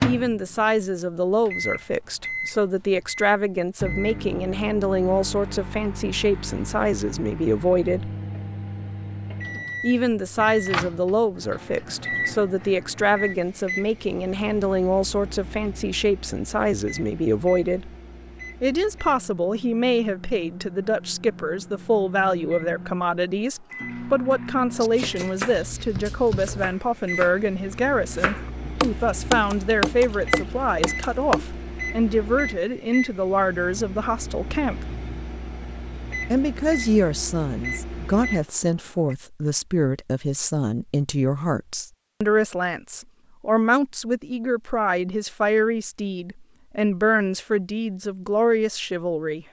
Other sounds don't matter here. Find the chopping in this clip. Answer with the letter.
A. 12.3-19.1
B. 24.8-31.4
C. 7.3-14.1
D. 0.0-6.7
B.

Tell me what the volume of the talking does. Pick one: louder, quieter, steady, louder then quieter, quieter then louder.
steady.